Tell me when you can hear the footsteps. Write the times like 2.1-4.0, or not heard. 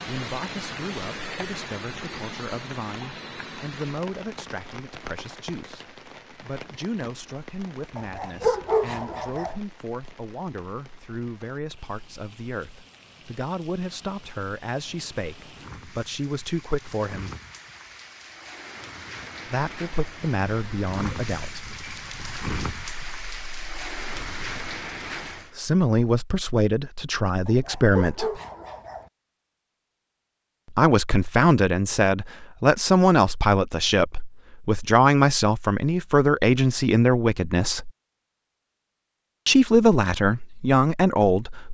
not heard.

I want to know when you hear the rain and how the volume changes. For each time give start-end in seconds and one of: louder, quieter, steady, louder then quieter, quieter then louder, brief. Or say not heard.
0.0-25.5 quieter then louder.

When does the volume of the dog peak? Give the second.
9 s.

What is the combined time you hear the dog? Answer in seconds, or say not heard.
3 s.